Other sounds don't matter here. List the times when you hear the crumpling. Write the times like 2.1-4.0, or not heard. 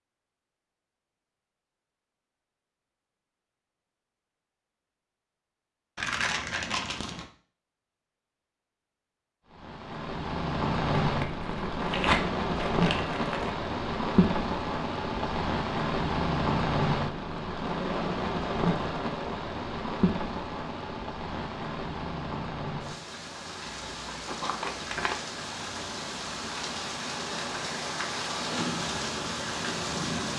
6.0-7.2, 11.0-13.6, 23.6-25.2.